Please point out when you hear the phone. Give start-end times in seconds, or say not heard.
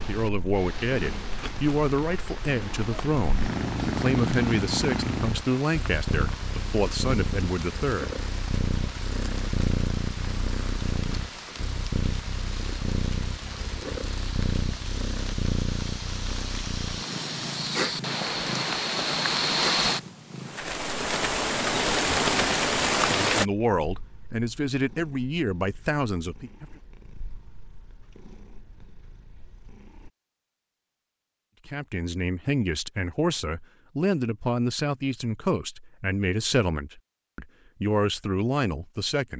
not heard.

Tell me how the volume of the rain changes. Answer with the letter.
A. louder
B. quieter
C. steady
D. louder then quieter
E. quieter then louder
A.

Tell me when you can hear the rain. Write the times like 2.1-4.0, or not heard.
0.0-23.4.